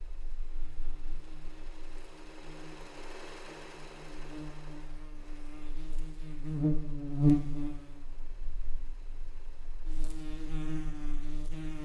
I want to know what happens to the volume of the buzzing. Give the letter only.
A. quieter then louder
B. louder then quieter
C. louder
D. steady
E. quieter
B.